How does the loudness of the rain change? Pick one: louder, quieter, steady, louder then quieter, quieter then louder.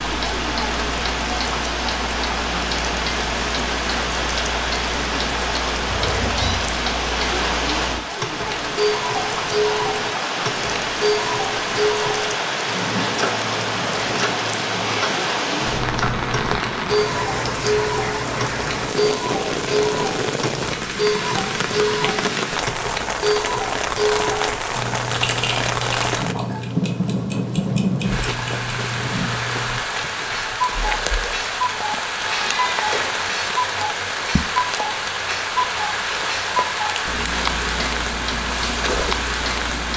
steady.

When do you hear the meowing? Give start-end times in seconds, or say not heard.
5.8-6.6, 15.6-16.6, 32.2-33.2.